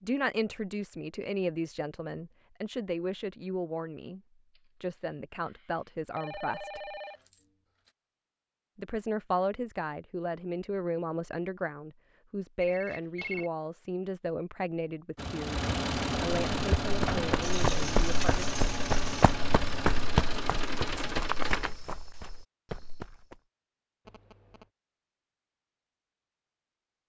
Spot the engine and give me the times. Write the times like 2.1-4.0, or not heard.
15.2-21.8.